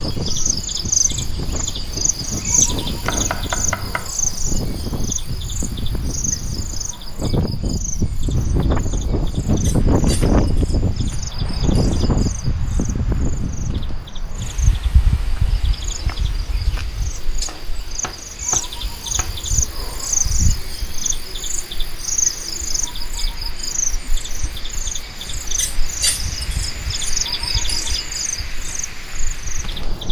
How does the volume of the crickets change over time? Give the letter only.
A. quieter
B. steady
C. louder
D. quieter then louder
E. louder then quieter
D.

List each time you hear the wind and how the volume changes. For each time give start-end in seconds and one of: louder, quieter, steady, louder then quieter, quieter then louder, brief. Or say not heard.
0.0-30.0 louder then quieter.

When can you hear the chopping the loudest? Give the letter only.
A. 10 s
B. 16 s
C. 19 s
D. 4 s
D.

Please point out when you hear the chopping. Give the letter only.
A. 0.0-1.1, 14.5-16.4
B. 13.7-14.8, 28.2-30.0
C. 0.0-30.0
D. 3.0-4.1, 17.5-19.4
D.